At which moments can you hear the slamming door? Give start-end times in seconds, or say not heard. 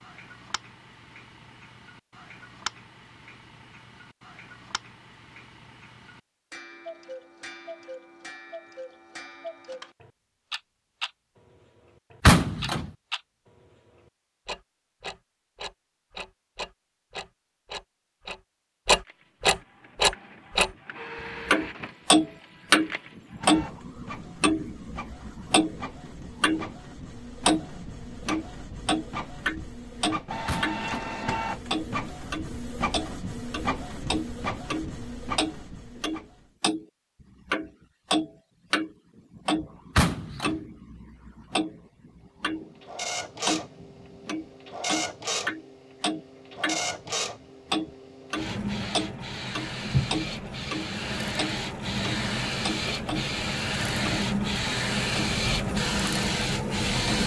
12.2-12.9, 30.4-30.9, 40.0-40.6.